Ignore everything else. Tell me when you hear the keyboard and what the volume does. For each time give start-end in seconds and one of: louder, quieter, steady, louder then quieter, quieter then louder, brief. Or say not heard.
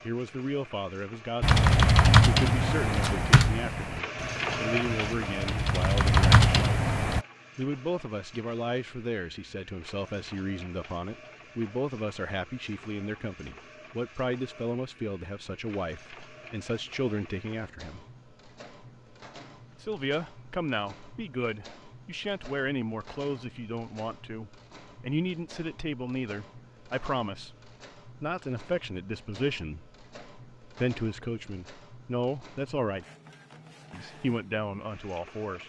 1.4-7.2 quieter then louder.